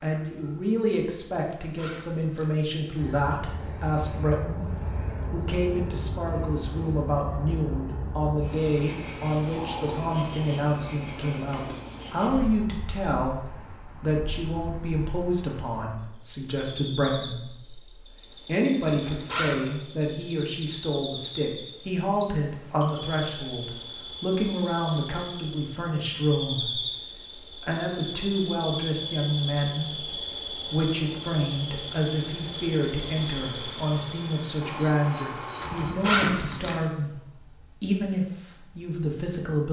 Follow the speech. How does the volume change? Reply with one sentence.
The loudness of the speech stays about the same.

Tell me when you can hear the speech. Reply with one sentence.
The speech can be heard from 0.0 to 39.6 s.